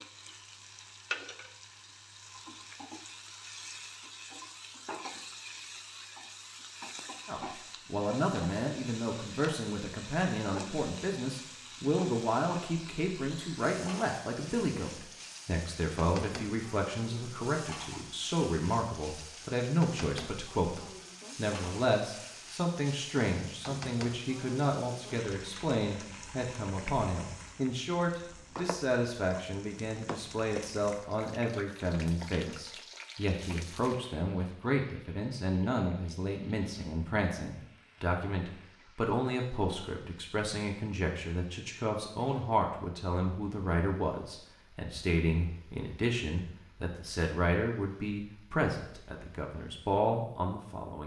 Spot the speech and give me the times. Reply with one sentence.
You can hear the speech from 7.2 to 51.0 s.